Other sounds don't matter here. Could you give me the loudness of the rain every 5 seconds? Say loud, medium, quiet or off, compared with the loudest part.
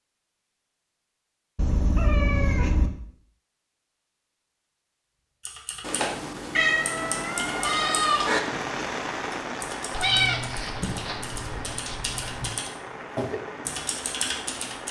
off, loud, medium.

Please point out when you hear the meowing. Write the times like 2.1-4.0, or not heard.
1.6-2.9, 5.8-8.4, 9.9-12.6.